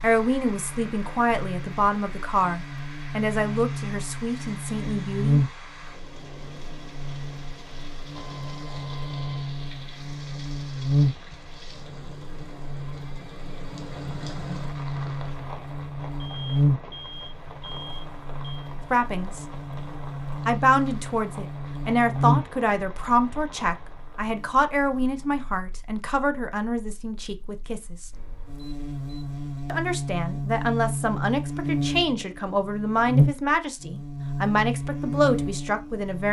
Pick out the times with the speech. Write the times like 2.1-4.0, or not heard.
0.0-5.4, 18.9-19.4, 20.4-28.1, 29.6-36.2.